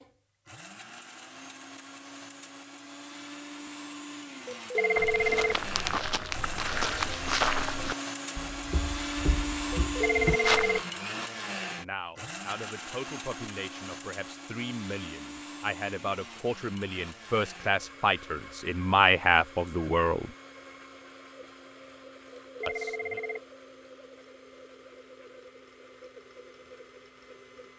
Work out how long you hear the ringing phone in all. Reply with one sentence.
The ringing phone can be heard for 3 seconds in total.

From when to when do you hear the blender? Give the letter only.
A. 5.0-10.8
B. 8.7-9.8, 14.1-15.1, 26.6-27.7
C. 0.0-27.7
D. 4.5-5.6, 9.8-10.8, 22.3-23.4
C.